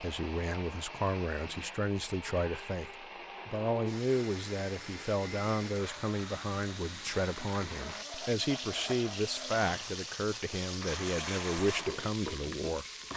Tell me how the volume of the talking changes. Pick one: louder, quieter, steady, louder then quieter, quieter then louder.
steady.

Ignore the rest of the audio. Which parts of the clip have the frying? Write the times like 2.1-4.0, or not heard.
3.9-13.1.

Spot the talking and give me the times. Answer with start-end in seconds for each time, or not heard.
0.0-13.1.